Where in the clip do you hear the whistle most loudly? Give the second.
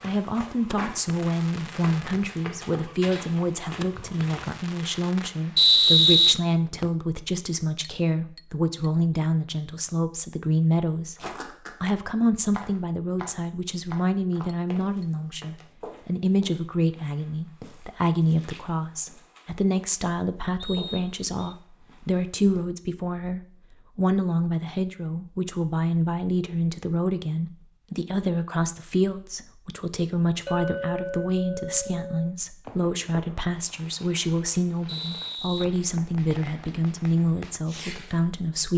6 s.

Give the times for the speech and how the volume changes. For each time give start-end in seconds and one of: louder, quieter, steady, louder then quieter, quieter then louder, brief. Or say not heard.
0.0-38.7 steady.